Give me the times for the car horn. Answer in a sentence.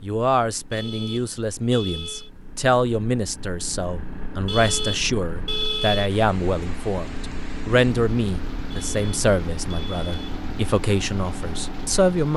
The car horn can be heard from 0.7 to 2.3 s, from 4.5 to 6.2 s and from 8.7 to 10.4 s.